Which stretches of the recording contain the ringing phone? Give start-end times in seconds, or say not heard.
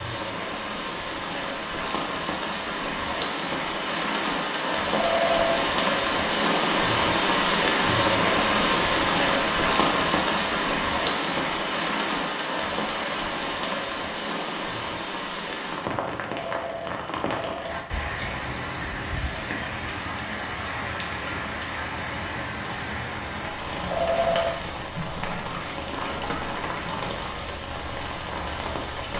4.9-5.6, 16.2-17.8, 23.9-24.6.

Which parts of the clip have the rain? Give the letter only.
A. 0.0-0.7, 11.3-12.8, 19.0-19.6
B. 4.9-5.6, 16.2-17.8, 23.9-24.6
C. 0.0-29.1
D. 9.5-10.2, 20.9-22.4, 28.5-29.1
C.